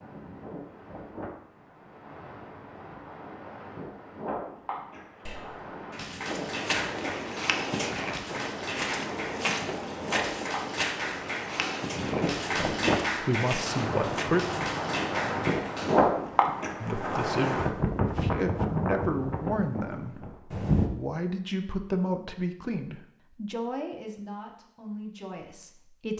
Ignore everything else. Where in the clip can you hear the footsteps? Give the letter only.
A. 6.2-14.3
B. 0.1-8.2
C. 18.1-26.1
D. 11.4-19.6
A.